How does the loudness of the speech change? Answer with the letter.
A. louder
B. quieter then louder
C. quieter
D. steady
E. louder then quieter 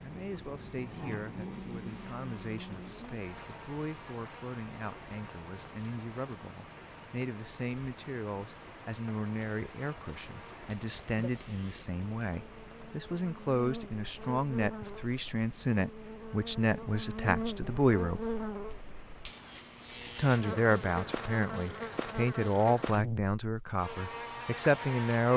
A.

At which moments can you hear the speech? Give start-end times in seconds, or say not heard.
0.0-18.2, 20.1-25.3.